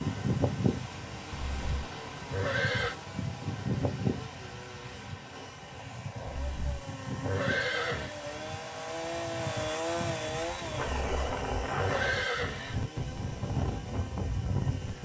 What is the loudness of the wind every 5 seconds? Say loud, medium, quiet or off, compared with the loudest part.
loud, medium, loud.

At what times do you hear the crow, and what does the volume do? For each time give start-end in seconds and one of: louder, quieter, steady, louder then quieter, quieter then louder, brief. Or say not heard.
not heard.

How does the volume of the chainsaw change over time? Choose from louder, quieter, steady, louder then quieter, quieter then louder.
louder then quieter.